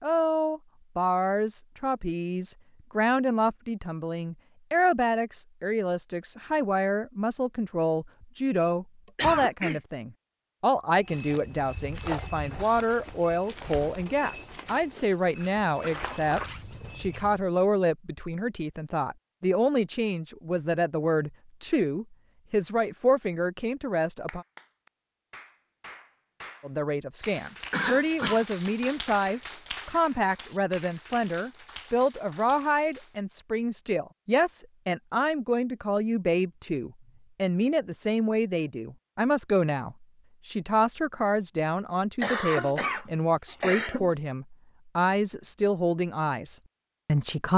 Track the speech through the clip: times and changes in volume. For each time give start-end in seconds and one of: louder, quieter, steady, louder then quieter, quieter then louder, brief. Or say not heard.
0.0-24.4 steady
26.6-47.5 steady.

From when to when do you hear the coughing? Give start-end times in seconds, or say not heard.
9.2-9.8, 27.7-28.4, 42.2-44.1.